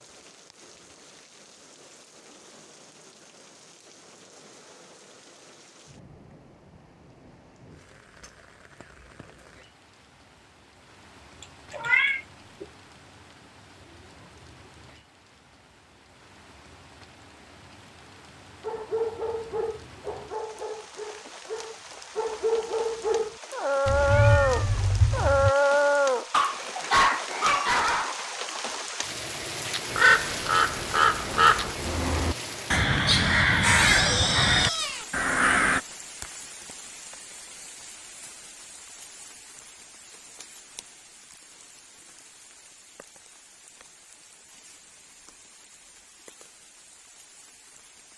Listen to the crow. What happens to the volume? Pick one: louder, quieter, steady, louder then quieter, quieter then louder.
steady.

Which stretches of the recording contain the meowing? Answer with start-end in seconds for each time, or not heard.
11.4-12.7, 23.9-25.5, 33.8-35.0.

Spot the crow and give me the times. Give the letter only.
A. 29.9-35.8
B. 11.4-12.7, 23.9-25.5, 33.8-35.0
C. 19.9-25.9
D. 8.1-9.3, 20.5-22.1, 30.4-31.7
A.